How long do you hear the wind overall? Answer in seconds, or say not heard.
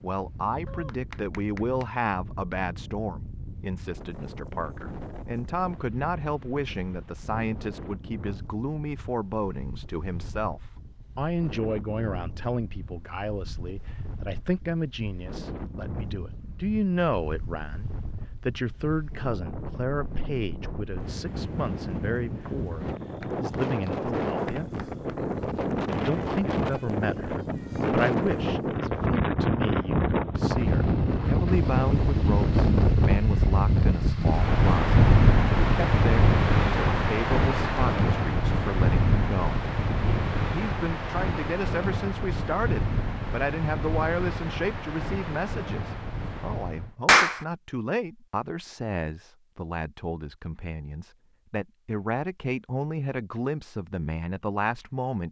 47 s.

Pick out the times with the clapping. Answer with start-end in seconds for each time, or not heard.
0.7-1.9, 23.2-25.2, 47.0-47.5.